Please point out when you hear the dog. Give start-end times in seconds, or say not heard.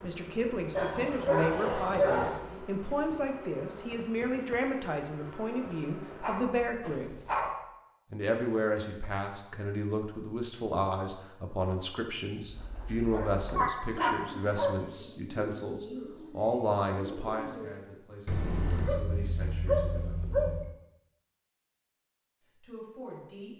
0.8-2.4, 6.2-7.5, 13.1-14.8, 18.2-20.7.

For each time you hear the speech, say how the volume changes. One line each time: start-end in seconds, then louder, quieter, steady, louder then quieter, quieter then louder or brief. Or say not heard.
0.0-7.2 steady
8.1-20.2 quieter
22.6-23.5 brief.